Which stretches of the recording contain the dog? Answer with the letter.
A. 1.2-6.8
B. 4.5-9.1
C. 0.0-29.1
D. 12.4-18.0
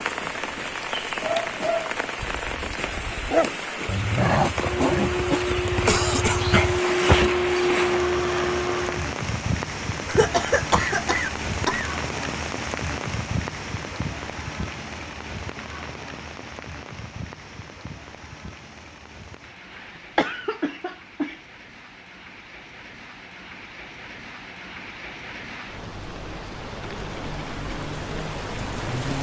A.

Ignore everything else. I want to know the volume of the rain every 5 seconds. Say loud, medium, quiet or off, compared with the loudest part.
loud, loud, loud, medium, quiet, loud.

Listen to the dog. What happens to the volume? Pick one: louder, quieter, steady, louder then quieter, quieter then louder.
louder then quieter.